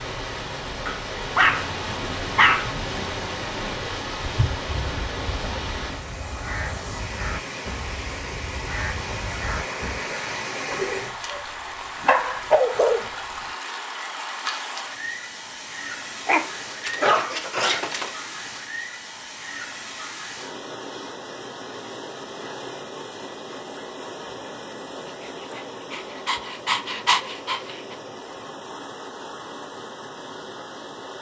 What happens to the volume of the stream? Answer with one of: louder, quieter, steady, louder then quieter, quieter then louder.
quieter.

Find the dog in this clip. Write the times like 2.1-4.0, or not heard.
0.8-3.8, 10.7-13.5, 16.2-18.1, 25.2-27.9.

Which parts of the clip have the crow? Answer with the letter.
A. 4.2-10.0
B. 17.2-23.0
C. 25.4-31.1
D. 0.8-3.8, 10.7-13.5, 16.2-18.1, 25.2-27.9
A.